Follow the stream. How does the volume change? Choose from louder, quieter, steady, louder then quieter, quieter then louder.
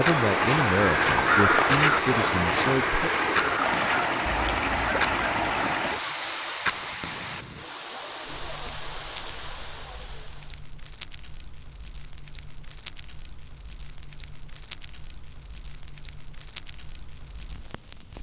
quieter.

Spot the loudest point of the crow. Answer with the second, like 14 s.
1 s.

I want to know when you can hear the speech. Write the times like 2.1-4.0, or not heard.
0.0-3.1.